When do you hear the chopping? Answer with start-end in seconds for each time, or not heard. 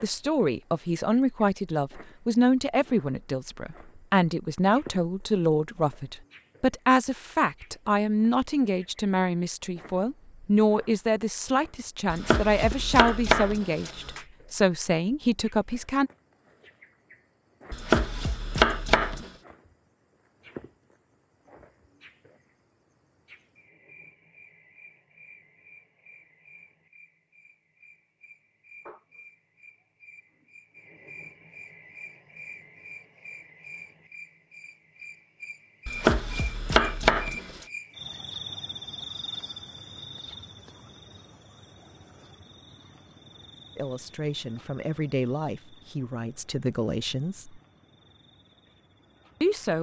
12.1-14.2, 17.7-19.3, 35.9-37.6.